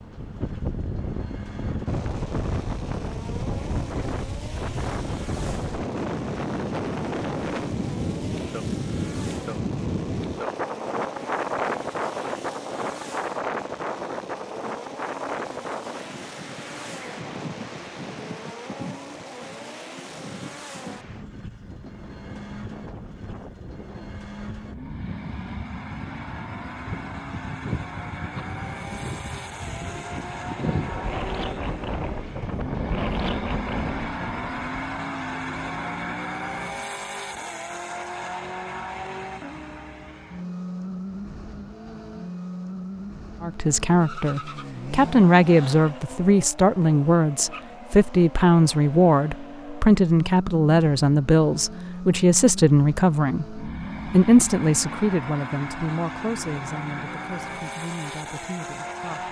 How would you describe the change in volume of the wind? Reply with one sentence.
The volume of the wind goes down, then up.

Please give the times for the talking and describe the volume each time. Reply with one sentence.
The talking can be heard from 43.4 to 59.2 s, getting quieter.